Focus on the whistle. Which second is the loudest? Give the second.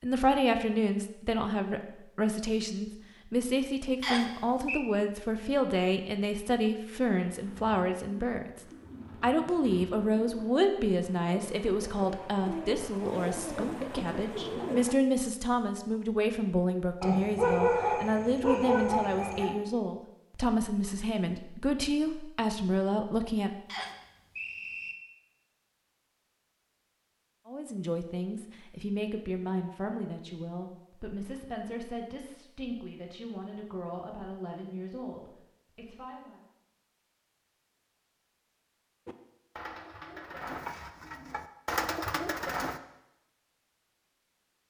4 s.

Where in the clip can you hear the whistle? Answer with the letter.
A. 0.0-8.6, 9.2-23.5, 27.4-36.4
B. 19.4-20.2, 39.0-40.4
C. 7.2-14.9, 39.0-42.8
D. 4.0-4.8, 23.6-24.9
D.